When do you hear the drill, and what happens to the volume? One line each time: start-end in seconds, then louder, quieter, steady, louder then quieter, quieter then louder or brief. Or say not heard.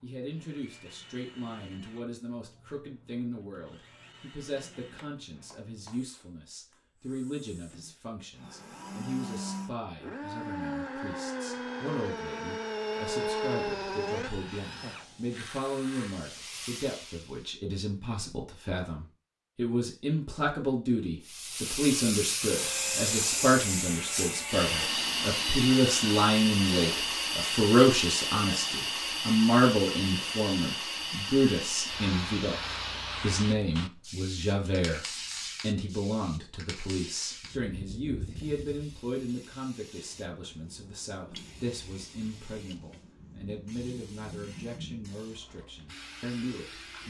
0.0-16.2 louder
22.4-27.1 steady.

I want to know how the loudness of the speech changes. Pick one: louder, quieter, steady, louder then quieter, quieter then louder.
louder then quieter.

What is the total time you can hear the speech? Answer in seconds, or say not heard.
47 s.